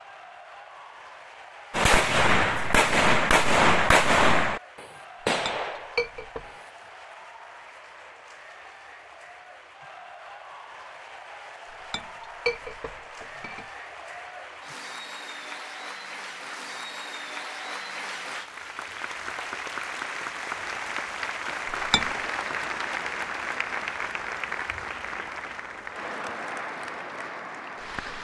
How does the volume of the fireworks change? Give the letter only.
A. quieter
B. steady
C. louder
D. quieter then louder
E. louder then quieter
A.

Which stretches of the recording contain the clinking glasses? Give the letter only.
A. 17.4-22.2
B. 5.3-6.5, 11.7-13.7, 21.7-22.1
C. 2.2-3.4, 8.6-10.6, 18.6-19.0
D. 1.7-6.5
B.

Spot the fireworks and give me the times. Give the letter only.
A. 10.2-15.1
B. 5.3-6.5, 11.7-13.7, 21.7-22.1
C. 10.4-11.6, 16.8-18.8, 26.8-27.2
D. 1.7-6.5
D.